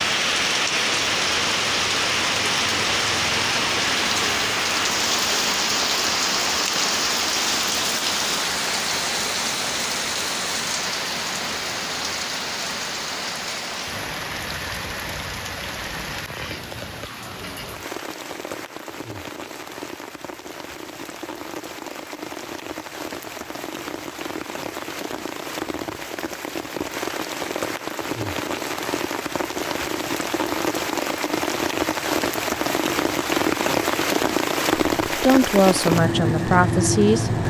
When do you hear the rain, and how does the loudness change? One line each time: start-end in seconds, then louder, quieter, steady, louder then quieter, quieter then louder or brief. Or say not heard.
0.0-37.4 quieter then louder.